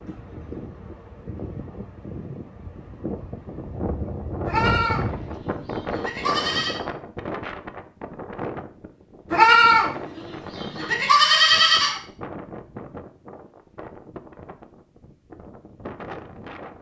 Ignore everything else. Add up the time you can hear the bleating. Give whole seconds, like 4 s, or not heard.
5 s.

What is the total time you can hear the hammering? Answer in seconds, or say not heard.
not heard.